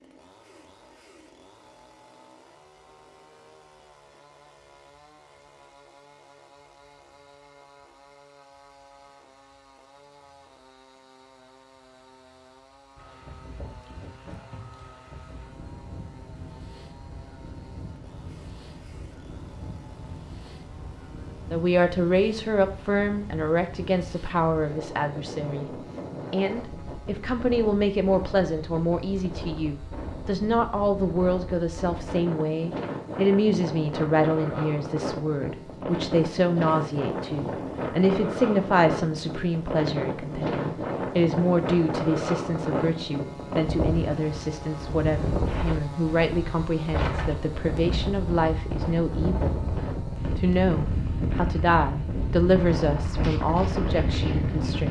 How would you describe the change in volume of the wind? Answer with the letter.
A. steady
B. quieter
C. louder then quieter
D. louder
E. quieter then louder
D.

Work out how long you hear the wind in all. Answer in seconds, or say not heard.
42 s.